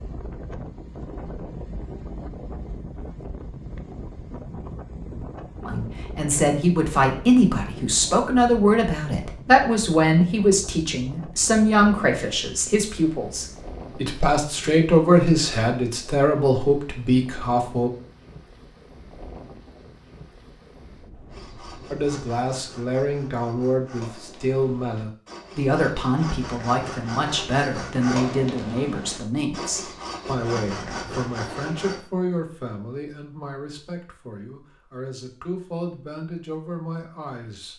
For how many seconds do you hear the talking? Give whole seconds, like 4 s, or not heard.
28 s.